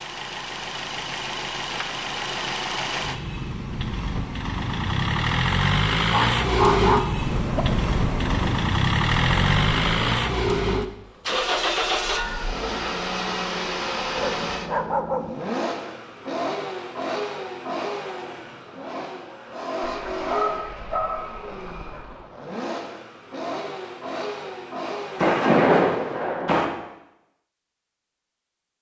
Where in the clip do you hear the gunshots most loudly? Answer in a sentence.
The loudest moment of the gunshots is at 26 seconds.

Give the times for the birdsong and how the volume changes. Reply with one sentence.
The birdsong can't be heard in this clip.